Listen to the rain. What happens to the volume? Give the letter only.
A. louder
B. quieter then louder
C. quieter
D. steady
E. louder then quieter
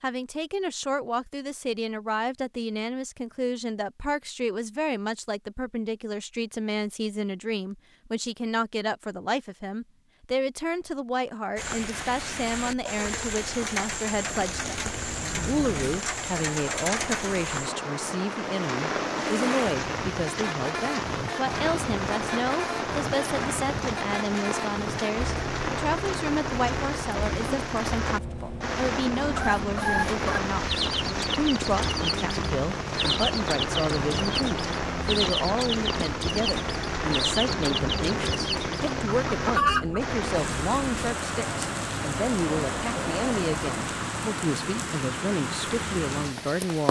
D.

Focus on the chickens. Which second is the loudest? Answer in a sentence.
The loudest moment of the chickens is at 40 seconds.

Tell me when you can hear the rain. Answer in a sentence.
You can hear the rain from 11.6 to 46.8 s.